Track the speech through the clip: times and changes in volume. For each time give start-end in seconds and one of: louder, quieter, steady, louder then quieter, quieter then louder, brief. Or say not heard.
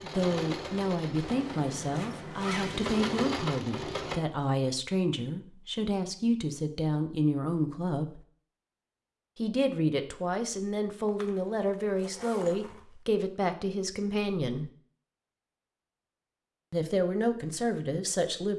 0.0-8.2 steady
9.3-14.7 steady
16.7-18.5 brief.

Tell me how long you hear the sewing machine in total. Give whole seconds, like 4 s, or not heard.
4 s.